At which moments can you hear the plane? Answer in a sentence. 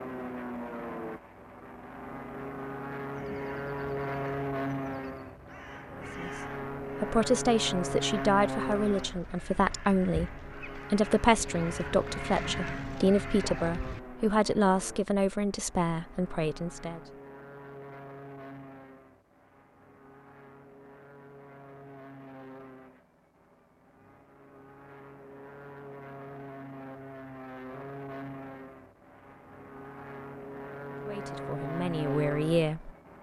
You can hear the plane from 0.0 to 33.1 s.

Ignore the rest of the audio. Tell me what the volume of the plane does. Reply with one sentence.
The volume of the plane goes down, then up.